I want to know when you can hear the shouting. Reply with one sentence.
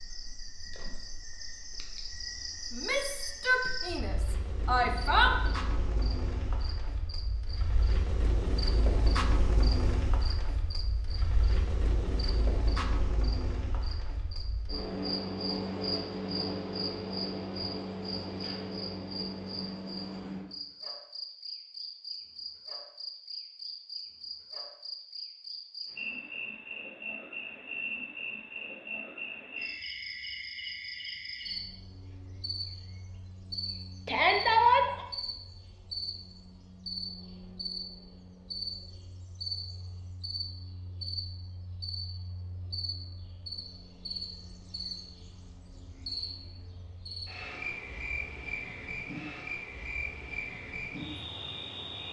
You can hear the shouting from 2.7 to 5.3 s and from 34.0 to 35.0 s.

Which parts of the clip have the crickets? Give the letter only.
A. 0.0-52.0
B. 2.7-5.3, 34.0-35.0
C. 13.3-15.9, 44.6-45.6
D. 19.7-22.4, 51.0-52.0
A.